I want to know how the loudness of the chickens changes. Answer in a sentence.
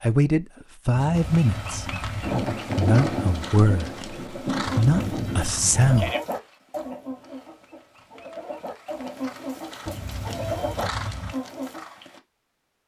The loudness of the chickens goes down, then up.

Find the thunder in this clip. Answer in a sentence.
You can hear the thunder from 2.2 to 6.0 s.